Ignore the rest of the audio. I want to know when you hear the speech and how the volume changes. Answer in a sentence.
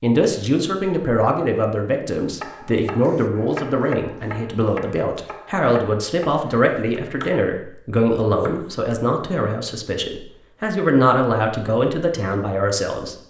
You can hear the speech from 0.0 to 13.2 s, at a steady volume.